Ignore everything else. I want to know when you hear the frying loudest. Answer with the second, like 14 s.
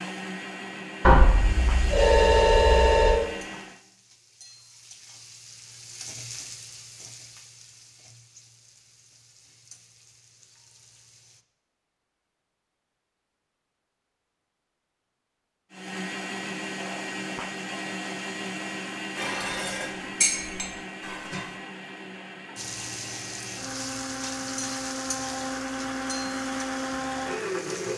25 s.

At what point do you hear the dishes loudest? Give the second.
20 s.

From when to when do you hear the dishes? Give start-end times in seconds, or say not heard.
19.1-21.6.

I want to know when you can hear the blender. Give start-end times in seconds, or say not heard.
0.0-3.9, 15.7-27.9.